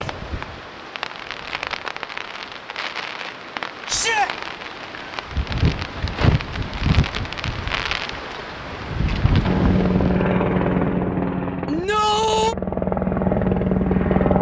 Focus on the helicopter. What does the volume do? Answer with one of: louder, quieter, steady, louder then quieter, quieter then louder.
quieter then louder.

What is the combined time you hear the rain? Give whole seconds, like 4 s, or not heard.
10 s.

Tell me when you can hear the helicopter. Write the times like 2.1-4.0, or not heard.
9.4-14.3.